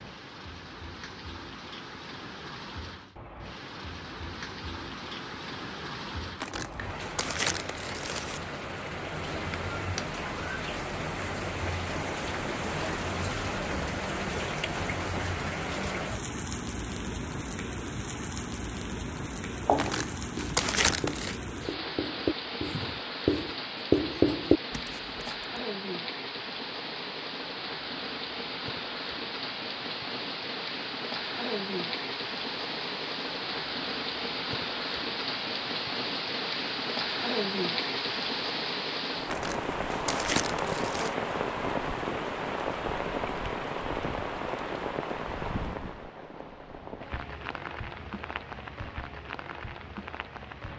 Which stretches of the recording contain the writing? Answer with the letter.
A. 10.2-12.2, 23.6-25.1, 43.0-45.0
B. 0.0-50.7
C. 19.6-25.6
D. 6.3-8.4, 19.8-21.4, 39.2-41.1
C.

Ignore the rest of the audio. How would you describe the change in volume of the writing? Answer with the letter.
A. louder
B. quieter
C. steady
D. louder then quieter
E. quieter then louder
A.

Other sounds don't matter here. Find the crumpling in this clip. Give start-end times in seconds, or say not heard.
6.3-8.4, 19.8-21.4, 39.2-41.1.